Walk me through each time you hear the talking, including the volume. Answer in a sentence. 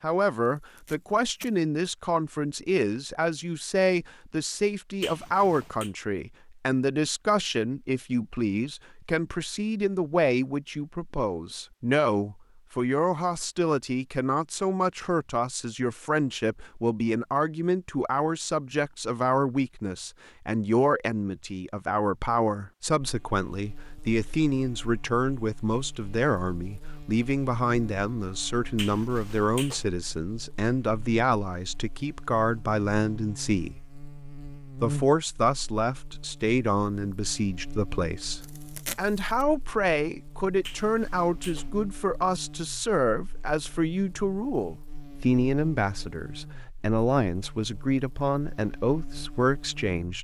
You can hear the talking from 0.0 to 34.0 s, at a steady volume; and from 34.8 to 50.1 s, at a steady volume.